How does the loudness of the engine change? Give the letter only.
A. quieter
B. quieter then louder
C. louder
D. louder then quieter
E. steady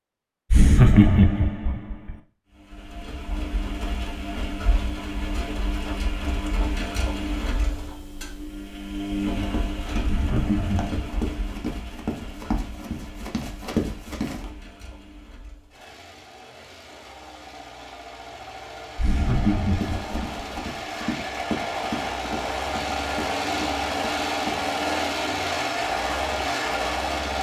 B.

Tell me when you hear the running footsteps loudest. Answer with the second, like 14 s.
14 s.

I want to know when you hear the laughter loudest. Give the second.
1 s.